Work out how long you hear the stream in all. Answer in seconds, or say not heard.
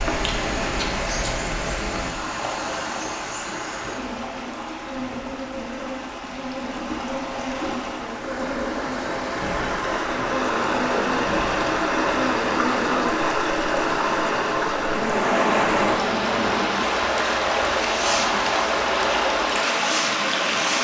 21 s.